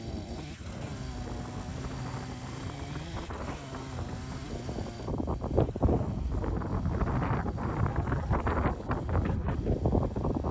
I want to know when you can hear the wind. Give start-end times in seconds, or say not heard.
0.0-10.4.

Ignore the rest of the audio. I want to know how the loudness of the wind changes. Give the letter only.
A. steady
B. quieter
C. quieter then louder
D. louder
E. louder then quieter
D.